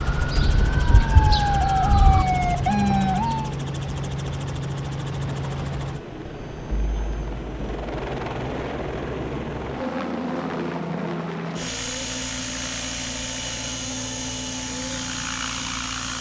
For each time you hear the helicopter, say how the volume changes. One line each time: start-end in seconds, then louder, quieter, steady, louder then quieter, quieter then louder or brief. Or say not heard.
0.0-16.1 steady.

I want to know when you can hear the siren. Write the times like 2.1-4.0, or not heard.
0.0-3.5.